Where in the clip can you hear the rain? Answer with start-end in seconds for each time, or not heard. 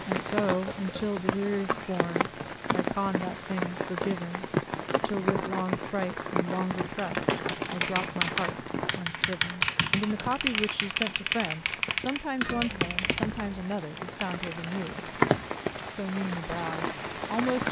0.0-17.6.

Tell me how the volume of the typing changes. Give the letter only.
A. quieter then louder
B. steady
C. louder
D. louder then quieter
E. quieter
E.